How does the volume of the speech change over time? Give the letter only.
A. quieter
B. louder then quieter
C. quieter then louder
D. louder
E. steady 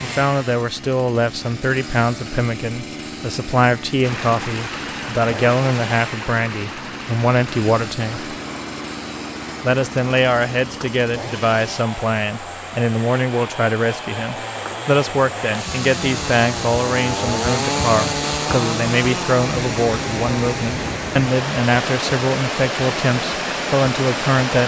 E.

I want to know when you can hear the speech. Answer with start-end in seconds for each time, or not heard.
0.0-8.3, 9.6-24.6.